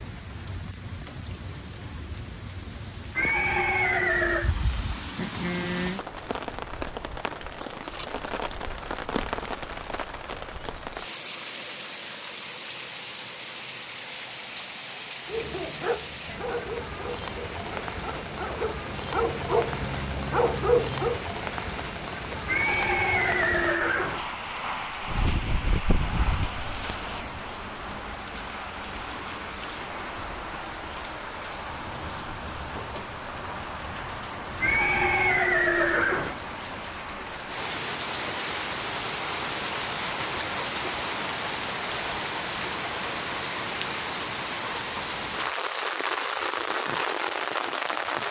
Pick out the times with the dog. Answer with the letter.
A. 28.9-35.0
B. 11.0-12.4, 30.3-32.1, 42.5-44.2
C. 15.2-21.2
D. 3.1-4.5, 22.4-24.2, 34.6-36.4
C.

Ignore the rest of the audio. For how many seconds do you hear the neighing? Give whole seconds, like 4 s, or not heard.
5 s.